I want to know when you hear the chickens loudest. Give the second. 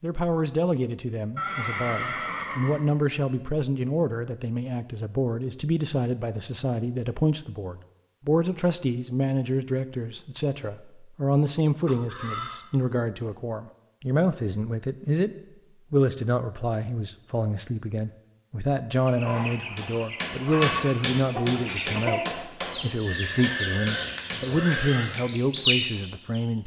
26 s.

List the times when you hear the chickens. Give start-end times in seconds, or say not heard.
19.1-26.4.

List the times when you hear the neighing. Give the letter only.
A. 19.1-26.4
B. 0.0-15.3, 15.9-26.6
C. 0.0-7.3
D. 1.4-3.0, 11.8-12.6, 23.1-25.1
D.